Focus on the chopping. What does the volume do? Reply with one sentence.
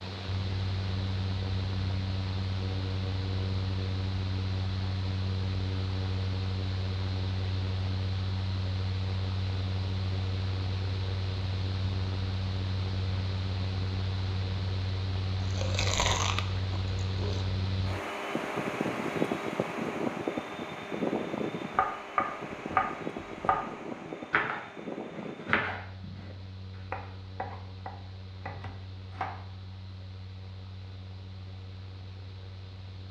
The volume of the chopping goes down.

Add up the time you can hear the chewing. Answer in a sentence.
The chewing can be heard for 2 seconds in total.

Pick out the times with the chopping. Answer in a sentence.
The chopping can be heard from 21.7 to 29.4 s.